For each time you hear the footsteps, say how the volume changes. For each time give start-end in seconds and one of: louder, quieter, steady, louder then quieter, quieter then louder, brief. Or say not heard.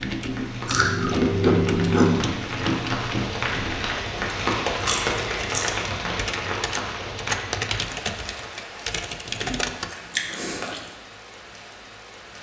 not heard.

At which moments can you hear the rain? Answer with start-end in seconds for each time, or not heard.
0.0-12.3.